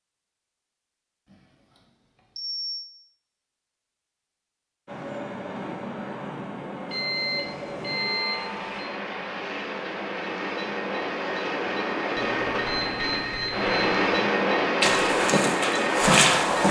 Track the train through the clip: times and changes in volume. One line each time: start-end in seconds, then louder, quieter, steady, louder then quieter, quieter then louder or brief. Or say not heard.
4.8-16.6 louder.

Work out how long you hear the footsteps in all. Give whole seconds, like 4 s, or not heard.
2 s.